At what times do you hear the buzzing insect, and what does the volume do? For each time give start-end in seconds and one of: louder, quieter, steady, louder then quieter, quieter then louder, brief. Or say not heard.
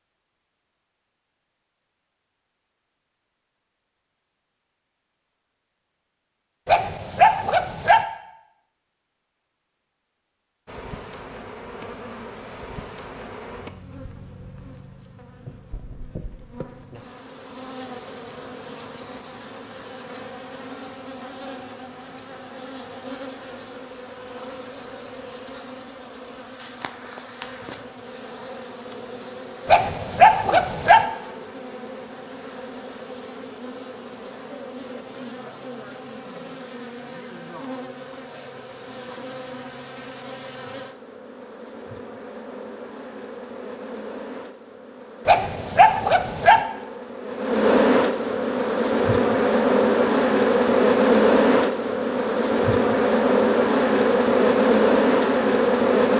10.7-56.1 louder.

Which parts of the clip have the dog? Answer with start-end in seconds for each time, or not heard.
6.7-8.1, 29.6-31.1, 45.2-46.6.